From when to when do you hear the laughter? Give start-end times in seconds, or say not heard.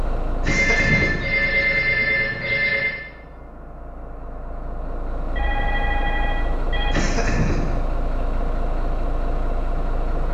0.4-1.8, 6.9-7.8.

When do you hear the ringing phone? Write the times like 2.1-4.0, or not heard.
0.4-3.0, 5.3-7.2.